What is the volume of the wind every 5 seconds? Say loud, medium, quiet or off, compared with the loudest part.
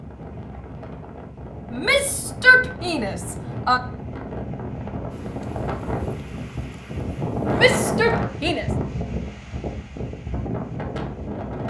medium, loud, loud.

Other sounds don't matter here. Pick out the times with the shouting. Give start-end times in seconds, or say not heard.
1.7-3.8, 7.5-8.7.